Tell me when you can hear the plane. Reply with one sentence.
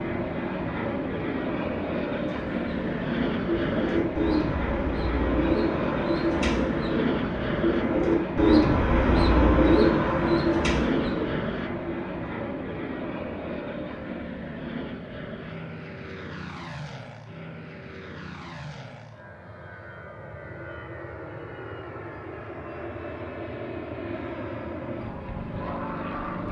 The plane can be heard from 0.0 to 26.4 s.